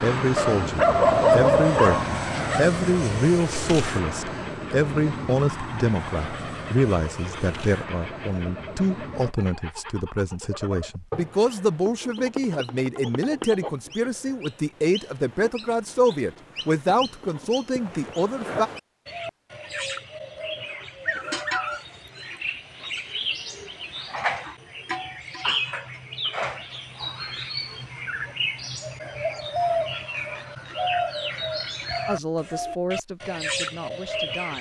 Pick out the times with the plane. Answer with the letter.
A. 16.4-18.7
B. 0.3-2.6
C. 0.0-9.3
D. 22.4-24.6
C.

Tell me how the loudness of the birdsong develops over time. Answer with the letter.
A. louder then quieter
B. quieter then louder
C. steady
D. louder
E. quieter
D.